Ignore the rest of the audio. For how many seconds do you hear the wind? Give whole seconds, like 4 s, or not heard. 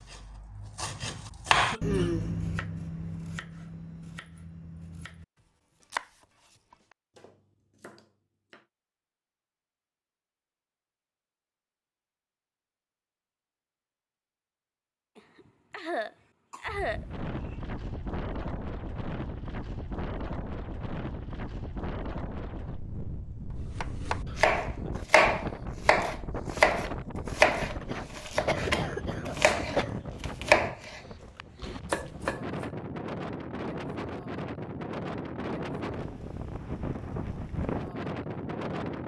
22 s.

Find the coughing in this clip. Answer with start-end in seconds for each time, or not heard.
1.4-2.1, 15.2-17.6, 27.6-29.9.